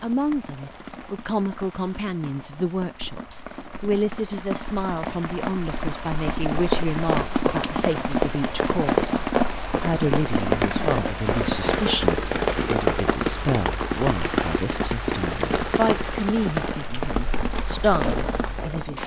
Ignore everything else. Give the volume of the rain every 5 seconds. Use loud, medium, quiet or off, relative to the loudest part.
quiet, loud, loud, loud.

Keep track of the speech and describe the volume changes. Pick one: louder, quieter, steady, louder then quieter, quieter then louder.
steady.